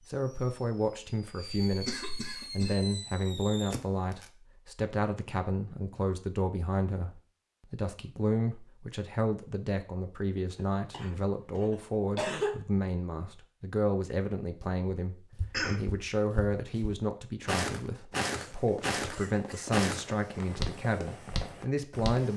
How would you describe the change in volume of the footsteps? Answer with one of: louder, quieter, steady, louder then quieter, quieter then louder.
louder then quieter.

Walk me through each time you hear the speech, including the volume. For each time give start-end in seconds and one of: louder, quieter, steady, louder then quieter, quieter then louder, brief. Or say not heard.
0.1-22.3 steady.